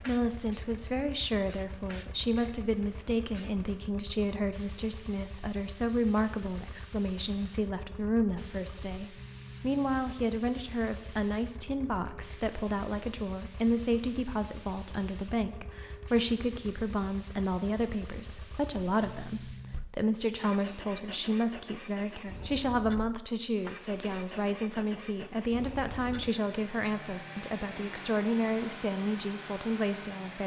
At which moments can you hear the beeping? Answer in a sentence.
The beeping can't be heard in this clip.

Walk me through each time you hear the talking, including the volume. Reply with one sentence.
The talking can be heard from 0.0 to 30.4 s, at a steady volume.